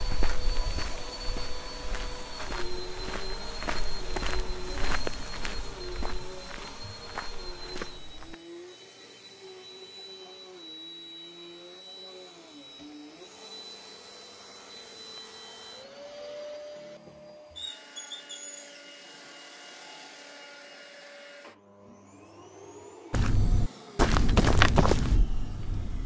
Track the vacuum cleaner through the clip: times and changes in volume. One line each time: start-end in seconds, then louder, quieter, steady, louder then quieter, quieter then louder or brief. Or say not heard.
0.0-26.0 quieter.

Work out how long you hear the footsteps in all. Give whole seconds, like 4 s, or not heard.
11 s.